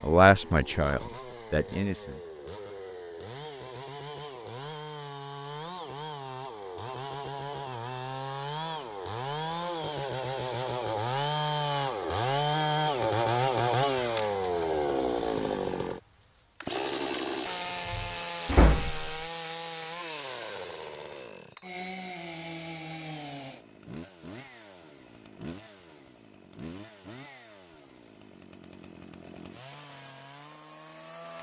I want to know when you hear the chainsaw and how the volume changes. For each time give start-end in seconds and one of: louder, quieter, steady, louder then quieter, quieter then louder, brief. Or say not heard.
0.0-31.3 louder then quieter.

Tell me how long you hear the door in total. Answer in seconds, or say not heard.
2 s.